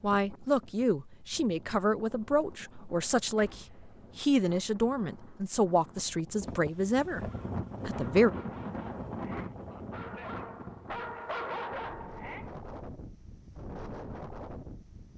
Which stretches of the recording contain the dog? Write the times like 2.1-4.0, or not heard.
7.1-12.5.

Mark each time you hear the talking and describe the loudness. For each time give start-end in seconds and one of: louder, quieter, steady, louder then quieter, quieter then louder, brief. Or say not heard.
0.0-8.3 steady.